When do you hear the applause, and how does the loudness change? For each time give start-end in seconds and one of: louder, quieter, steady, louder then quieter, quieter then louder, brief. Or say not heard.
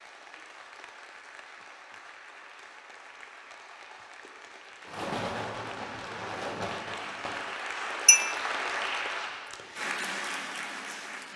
0.0-11.3 louder.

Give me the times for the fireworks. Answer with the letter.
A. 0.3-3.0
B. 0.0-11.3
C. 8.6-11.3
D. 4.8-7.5
D.